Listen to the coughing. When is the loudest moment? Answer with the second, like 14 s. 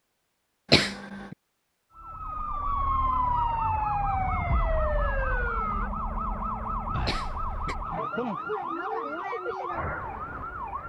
1 s.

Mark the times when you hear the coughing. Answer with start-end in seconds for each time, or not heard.
0.7-1.4, 7.0-7.8.